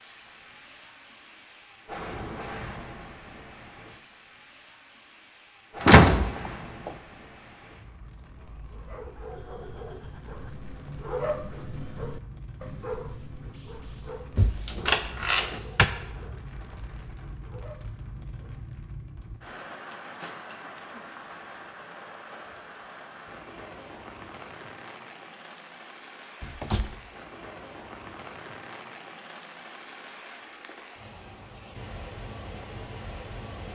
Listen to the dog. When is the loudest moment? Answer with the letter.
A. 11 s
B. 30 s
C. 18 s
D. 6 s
A.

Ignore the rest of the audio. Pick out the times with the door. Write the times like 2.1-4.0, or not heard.
5.8-6.9, 14.3-15.8, 26.4-26.9.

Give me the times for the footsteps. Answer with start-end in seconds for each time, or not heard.
not heard.